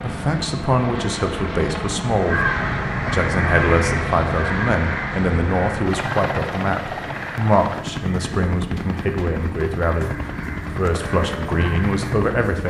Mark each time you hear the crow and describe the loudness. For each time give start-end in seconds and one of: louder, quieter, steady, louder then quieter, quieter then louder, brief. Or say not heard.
2.0-12.3 quieter then louder.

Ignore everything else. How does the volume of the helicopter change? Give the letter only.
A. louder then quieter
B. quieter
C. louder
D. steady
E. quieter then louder
D.